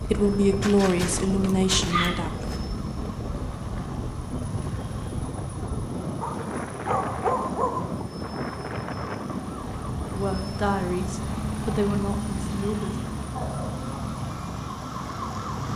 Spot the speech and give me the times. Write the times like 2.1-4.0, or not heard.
0.0-2.4, 10.1-13.1.